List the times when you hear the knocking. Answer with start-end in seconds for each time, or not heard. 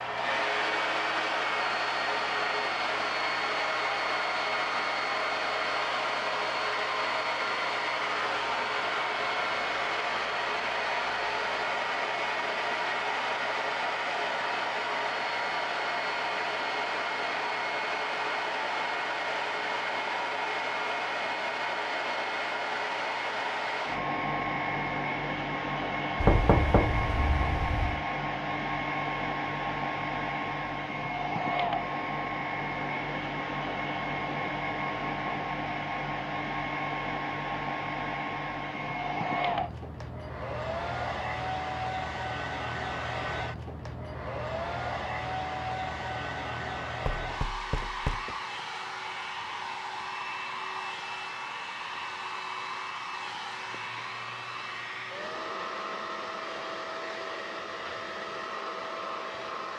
26.2-28.0, 47.0-48.4.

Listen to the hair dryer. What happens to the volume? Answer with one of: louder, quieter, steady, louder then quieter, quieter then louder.
quieter.